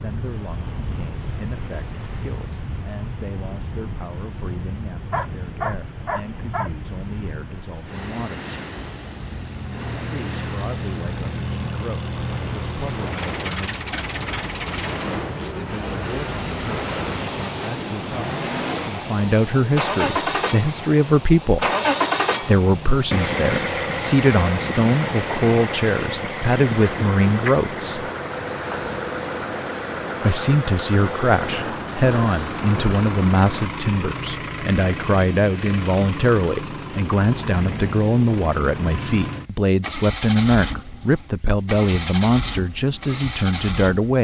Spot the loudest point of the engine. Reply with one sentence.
The volume of the engine peaks at 22 seconds.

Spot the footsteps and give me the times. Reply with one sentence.
The footsteps can't be heard in this clip.